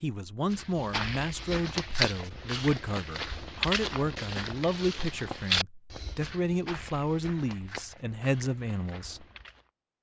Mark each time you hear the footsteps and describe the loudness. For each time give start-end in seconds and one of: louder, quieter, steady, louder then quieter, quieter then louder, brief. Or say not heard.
0.5-9.7 quieter.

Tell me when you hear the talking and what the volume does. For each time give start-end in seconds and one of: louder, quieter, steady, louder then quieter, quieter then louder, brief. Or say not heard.
0.0-9.2 steady.